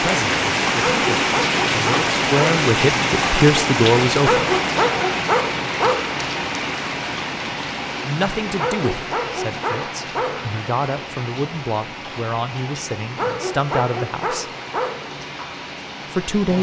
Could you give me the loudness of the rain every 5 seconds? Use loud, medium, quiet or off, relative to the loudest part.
loud, medium, quiet, quiet.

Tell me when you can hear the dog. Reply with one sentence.
The dog can be heard from 0.8 to 2.5 s, from 4.2 to 6.0 s, from 8.6 to 10.3 s and from 13.2 to 14.9 s.